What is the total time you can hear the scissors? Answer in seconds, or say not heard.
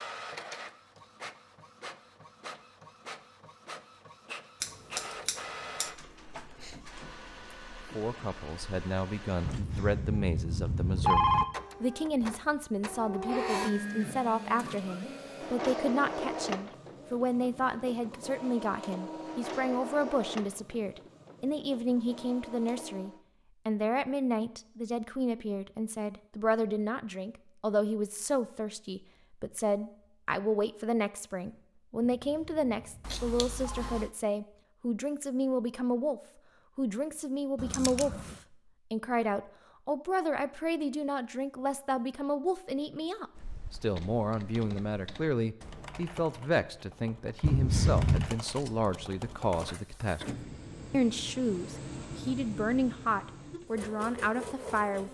3 s.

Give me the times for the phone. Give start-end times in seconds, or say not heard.
9.4-11.4, 32.0-34.0, 47.4-48.2.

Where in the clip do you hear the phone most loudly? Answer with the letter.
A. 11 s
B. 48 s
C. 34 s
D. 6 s
A.